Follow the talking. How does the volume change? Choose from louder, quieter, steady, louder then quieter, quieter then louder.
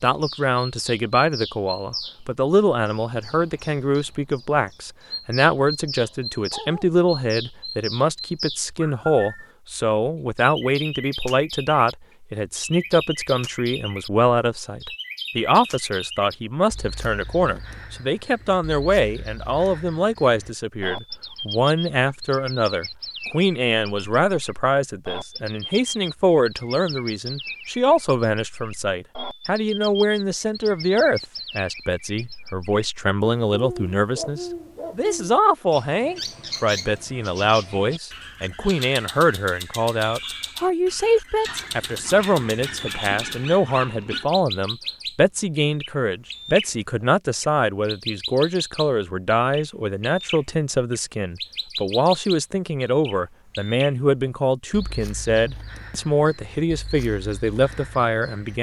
steady.